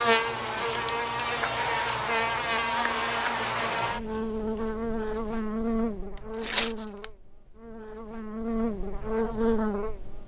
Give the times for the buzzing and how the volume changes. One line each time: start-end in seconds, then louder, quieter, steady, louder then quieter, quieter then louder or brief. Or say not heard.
0.0-10.2 quieter then louder.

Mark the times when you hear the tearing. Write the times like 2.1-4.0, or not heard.
0.6-1.3, 6.4-7.0.